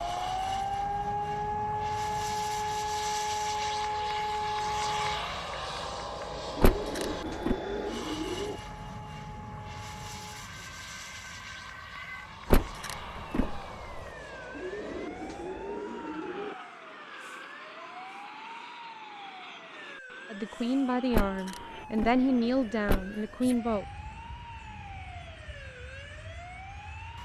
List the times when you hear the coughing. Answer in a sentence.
The coughing can't be heard in this clip.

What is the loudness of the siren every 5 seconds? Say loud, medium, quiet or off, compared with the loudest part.
loud, medium, quiet, quiet, quiet, quiet.